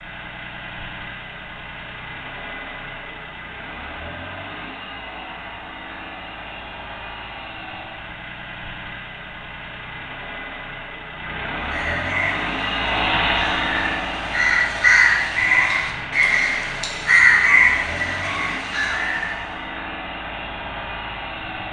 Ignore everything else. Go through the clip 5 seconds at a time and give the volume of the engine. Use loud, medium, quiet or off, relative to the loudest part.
medium, medium, loud, medium, medium.